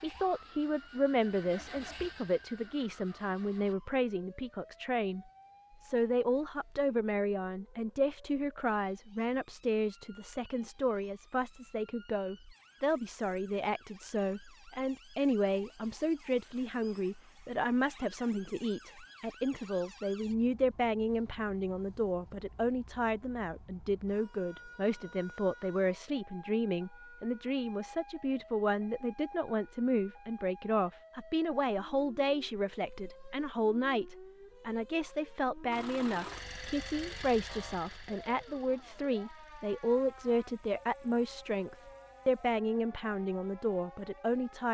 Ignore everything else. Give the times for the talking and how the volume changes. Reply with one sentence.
The talking can be heard from 0.0 to 44.6 s, at a steady volume.